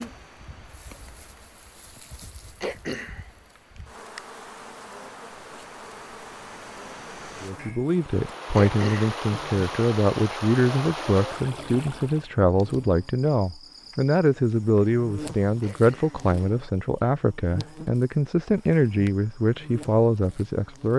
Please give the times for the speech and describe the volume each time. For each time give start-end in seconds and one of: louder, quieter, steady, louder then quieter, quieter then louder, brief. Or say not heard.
7.4-20.9 steady.